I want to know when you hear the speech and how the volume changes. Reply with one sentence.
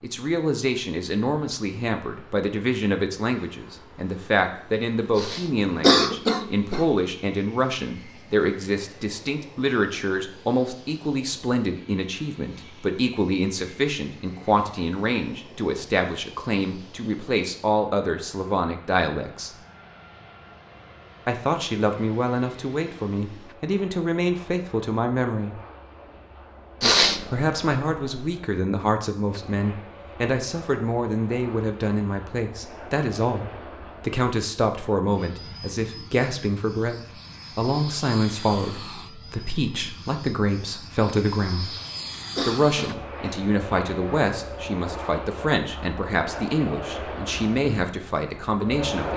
You can hear the speech from 0.0 to 19.5 s, at a steady volume; from 21.2 to 25.6 s, at a steady volume; from 27.3 to 41.8 s, at a steady volume; and from 42.5 to 49.1 s, at a steady volume.